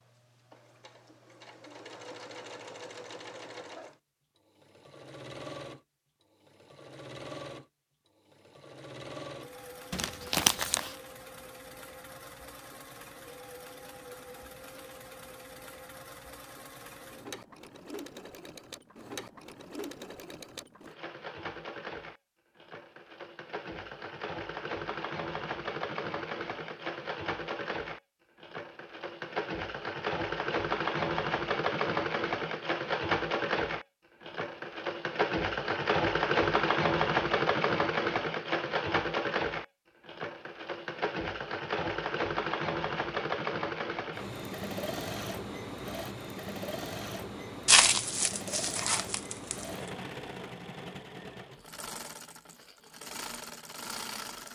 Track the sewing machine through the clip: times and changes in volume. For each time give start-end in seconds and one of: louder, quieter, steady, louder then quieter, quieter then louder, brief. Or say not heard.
0.0-54.5 louder then quieter.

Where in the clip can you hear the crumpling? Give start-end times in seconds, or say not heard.
9.9-10.9, 47.6-49.6.